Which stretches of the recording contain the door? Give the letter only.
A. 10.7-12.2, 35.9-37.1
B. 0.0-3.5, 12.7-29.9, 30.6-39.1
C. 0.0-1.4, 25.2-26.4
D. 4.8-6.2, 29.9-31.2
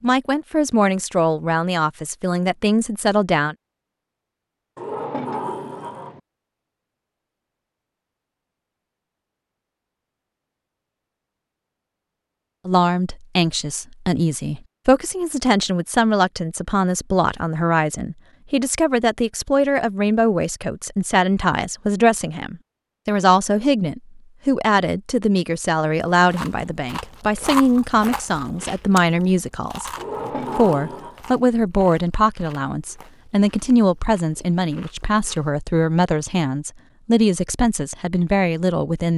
D.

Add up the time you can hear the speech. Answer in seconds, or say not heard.
29 s.